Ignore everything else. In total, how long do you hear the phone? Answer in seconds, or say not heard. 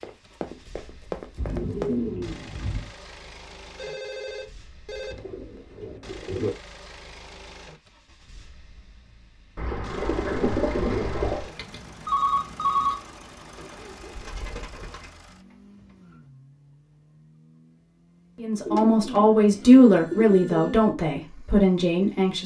5 s.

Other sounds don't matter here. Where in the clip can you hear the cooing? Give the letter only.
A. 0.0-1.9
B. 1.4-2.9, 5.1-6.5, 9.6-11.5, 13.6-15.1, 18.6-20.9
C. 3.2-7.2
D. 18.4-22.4
B.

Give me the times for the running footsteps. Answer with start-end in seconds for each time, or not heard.
0.0-1.9.